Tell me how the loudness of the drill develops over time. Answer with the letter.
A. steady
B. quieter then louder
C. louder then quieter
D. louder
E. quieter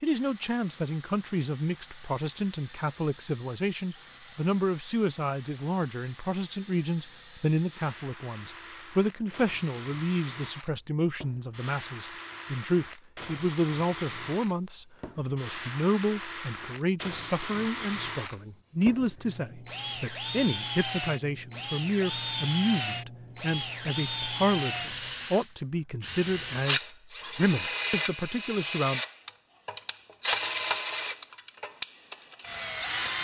D.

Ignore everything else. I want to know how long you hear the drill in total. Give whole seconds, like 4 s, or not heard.
33 s.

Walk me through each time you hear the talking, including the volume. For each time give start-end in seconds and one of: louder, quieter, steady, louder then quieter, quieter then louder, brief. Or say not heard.
0.0-29.0 steady.